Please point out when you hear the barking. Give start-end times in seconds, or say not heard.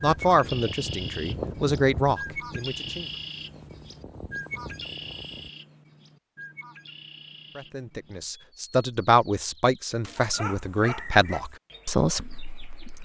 10.2-11.5.